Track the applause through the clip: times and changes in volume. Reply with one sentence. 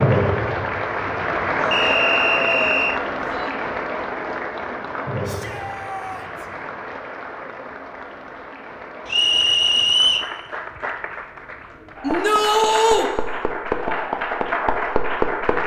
The applause can be heard from 0.0 to 15.6 s, getting quieter then louder.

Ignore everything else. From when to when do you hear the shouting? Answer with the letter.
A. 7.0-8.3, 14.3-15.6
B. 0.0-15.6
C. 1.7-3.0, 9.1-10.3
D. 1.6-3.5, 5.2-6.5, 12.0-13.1
D.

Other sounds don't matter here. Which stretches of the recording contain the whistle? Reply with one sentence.
You can hear the whistle from 1.7 to 3.0 s and from 9.1 to 10.3 s.